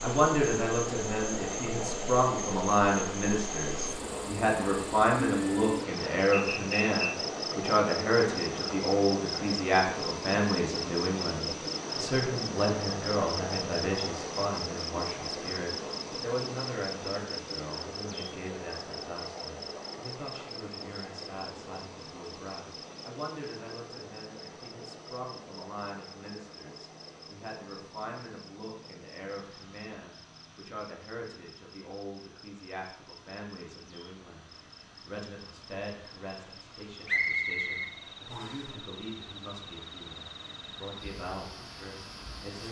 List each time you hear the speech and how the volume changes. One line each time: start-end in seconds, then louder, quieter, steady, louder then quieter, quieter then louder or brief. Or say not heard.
0.0-42.6 quieter.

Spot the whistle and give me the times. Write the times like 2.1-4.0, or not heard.
6.3-7.2, 37.0-38.6.